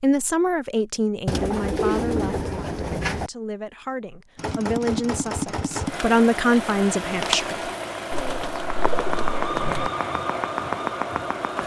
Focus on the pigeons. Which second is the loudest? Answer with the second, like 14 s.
2 s.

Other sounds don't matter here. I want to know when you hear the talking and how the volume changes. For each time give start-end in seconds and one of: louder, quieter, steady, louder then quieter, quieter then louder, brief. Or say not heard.
0.0-7.7 quieter then louder.